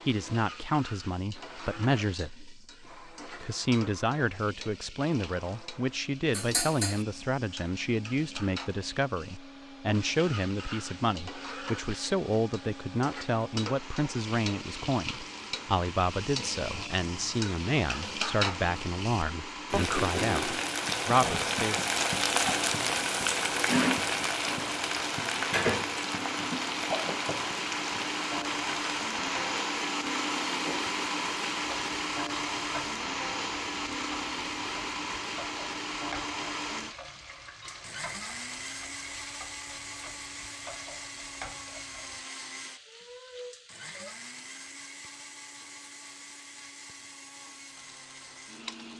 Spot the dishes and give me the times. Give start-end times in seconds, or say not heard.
6.3-7.0.